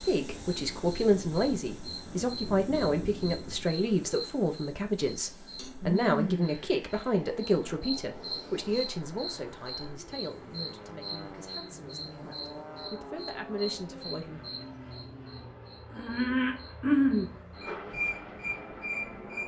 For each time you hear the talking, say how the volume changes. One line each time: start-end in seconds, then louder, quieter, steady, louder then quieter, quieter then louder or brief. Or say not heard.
0.0-14.4 quieter.